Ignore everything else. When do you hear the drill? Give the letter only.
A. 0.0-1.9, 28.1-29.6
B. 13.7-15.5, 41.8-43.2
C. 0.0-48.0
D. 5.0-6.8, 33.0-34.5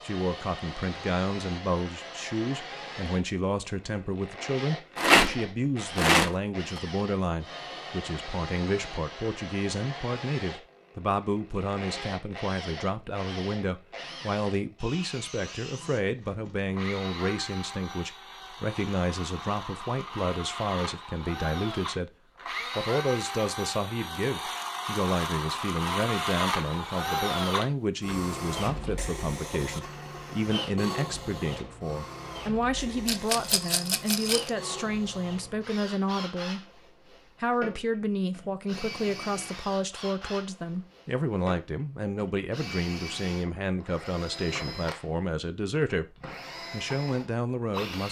C.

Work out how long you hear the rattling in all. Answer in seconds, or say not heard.
3 s.